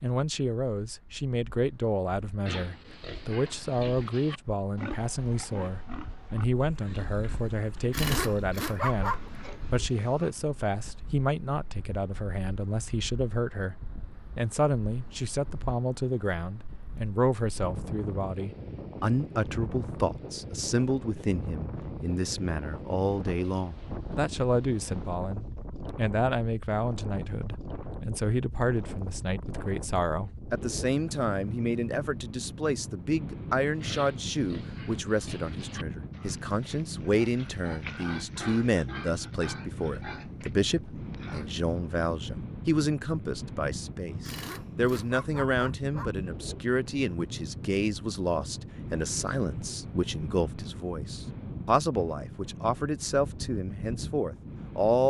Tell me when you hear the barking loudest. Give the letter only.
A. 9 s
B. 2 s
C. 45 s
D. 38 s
A.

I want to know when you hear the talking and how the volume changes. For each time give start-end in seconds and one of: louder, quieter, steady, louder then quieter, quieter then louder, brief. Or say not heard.
0.0-55.0 steady.